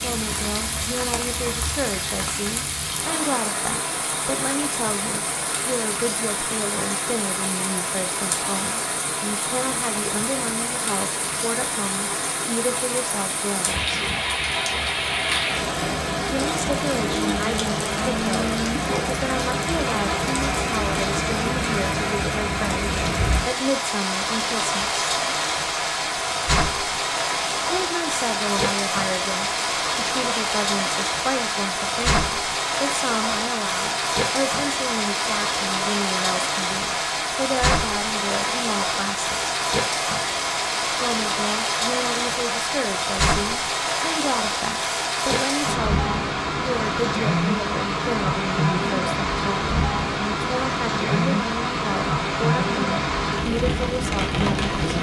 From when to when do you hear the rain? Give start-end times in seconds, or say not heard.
0.0-54.9.